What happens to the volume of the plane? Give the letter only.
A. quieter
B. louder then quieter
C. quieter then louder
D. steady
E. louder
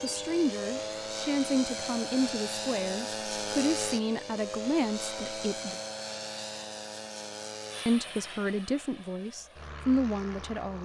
A.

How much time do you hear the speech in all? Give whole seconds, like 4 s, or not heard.
9 s.